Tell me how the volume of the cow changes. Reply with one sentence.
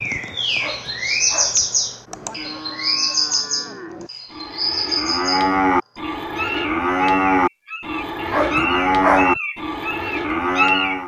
The loudness of the cow goes up.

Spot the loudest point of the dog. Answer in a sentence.
The volume of the dog peaks at 9 seconds.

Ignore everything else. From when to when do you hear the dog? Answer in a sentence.
You can hear the dog from 0.6 to 1.6 s and from 8.3 to 9.4 s.